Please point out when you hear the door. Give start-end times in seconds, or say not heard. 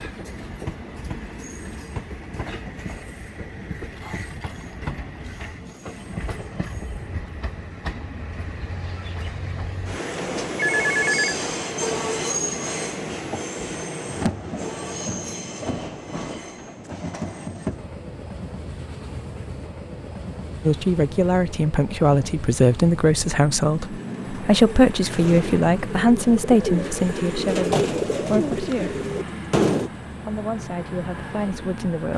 not heard.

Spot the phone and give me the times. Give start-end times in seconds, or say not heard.
10.6-11.3.